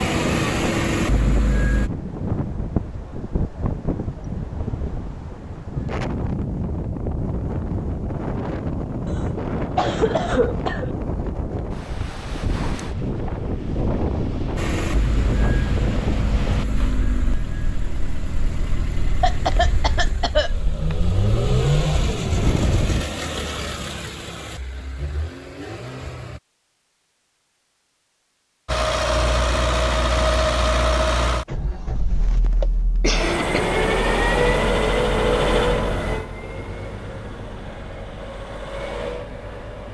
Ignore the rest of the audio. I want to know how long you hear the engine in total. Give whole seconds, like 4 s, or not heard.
25 s.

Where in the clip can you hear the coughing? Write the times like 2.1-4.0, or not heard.
9.1-10.9, 19.2-20.9, 32.2-33.7.